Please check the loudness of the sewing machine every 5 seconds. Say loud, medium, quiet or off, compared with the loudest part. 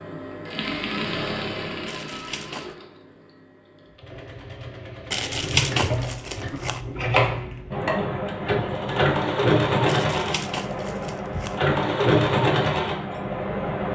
medium, loud, loud.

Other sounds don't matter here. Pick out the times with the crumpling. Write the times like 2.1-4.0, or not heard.
1.9-2.8, 5.1-6.8, 9.8-11.6.